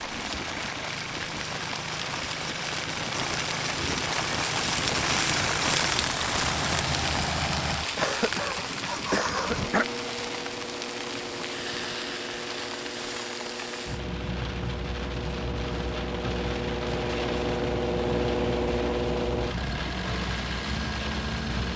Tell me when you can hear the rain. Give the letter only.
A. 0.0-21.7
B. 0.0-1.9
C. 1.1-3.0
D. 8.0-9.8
A.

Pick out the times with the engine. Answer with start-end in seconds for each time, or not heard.
0.0-21.7.